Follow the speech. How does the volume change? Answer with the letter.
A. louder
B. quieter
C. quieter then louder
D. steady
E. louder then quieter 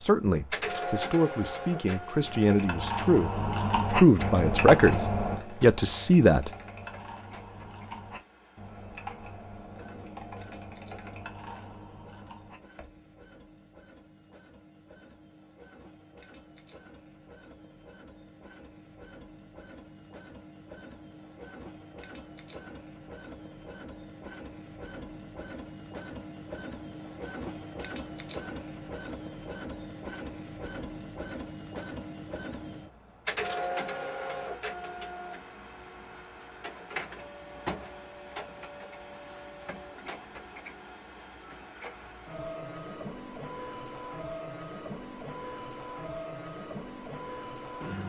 A.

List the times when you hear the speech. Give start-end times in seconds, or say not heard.
0.0-6.5.